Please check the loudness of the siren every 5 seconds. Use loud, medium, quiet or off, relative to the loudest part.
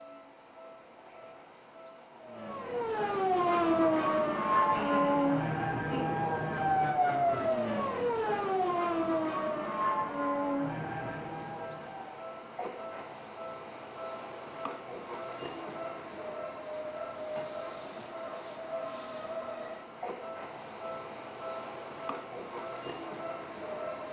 loud, loud, medium, off, off.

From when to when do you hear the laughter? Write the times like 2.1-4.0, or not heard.
4.7-6.0.